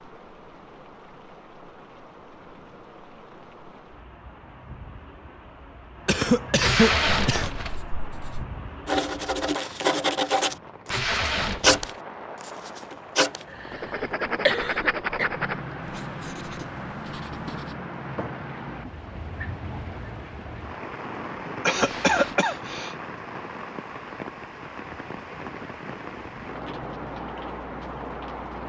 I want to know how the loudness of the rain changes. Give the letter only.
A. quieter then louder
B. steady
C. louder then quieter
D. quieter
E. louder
E.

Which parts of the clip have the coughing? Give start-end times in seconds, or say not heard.
6.0-7.5, 13.5-15.2, 21.6-22.9.